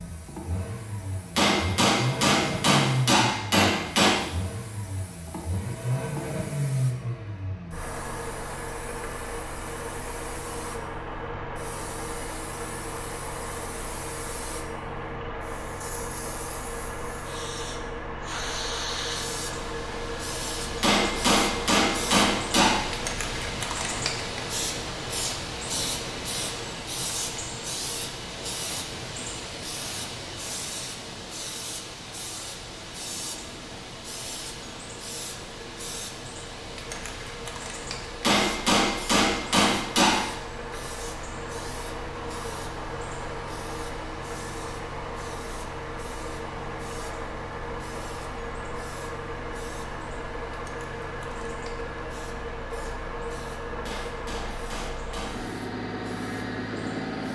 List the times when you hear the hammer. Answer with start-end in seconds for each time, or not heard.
1.4-4.2, 20.8-22.9, 38.2-40.2, 53.9-55.4.